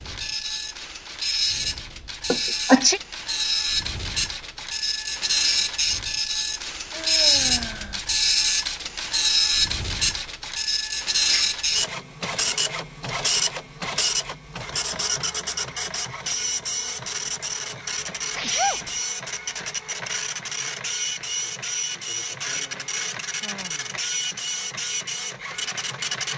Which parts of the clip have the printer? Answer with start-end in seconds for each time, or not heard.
0.0-26.3.